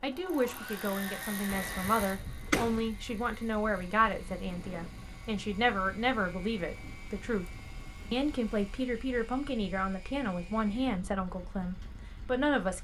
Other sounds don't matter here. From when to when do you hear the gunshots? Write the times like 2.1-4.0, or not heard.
1.5-2.9.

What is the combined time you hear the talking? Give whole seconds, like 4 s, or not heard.
12 s.